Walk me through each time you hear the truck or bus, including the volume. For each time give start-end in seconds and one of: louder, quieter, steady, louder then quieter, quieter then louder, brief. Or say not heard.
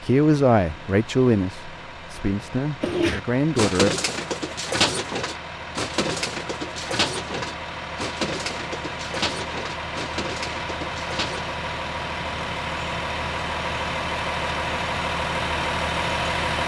0.0-16.6 louder.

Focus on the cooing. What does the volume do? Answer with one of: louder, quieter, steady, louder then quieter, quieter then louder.
quieter.